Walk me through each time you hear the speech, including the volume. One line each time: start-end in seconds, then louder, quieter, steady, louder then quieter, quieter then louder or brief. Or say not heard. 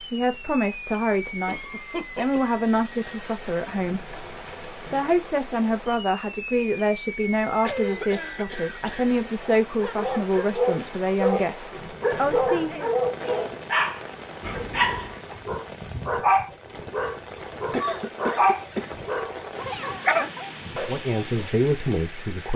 0.0-12.9 steady
20.7-22.5 brief.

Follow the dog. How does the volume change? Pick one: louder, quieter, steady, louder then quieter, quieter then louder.
steady.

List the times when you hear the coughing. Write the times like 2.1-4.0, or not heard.
1.4-2.6, 7.6-9.1, 17.7-18.9.